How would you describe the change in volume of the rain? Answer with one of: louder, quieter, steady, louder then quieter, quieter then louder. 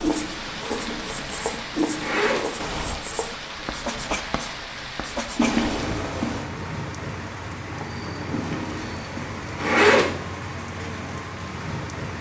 steady.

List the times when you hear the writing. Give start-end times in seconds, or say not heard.
0.0-5.5.